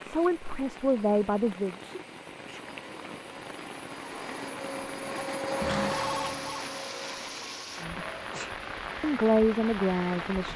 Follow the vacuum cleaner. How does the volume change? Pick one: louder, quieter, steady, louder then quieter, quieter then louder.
louder then quieter.